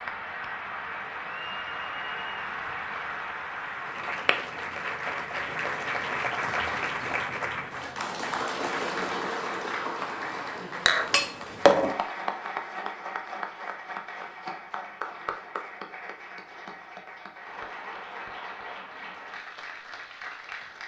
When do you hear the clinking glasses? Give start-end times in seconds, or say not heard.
10.8-11.9.